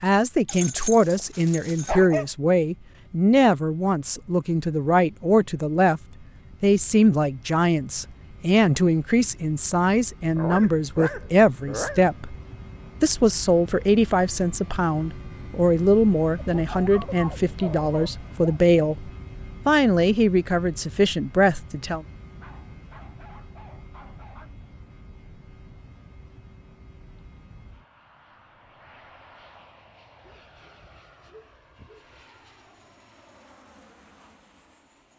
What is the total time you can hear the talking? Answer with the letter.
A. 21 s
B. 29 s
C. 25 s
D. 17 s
A.